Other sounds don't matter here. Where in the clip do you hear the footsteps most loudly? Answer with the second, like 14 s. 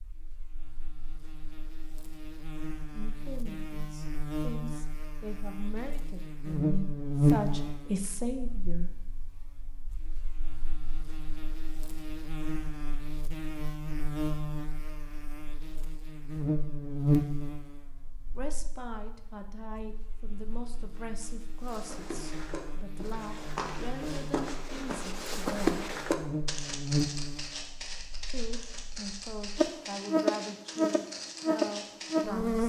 26 s.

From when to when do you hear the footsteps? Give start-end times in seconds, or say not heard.
21.6-32.2.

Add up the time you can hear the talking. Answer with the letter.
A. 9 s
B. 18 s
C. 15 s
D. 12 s
B.